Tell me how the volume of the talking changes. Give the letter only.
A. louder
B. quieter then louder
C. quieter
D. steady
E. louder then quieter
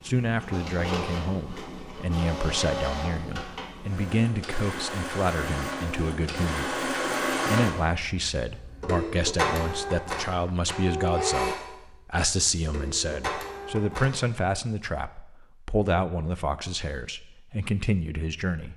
D.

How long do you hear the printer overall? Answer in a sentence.
The printer can be heard for 14 seconds in total.